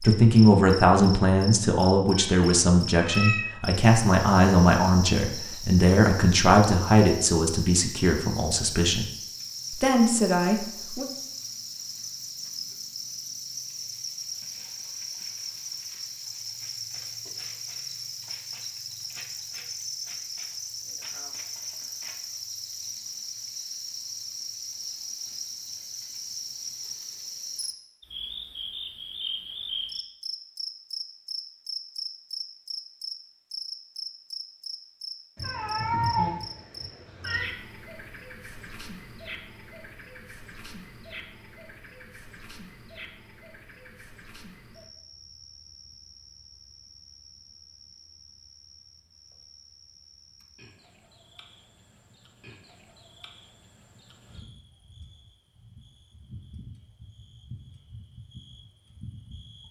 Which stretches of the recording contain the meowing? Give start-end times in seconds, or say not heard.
2.1-3.5, 35.4-37.5.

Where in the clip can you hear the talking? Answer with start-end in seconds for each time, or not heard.
0.0-9.1, 9.7-11.1.